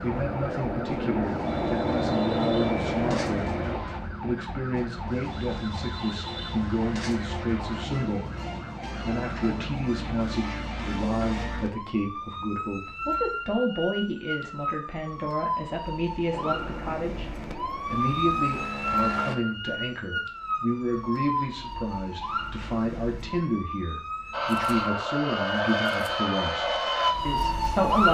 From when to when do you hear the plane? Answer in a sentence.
You can hear the plane from 0.0 to 3.8 s, from 16.3 to 19.4 s and from 24.3 to 27.8 s.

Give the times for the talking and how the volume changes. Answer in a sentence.
You can hear the talking from 0.0 to 28.0 s, at a steady volume.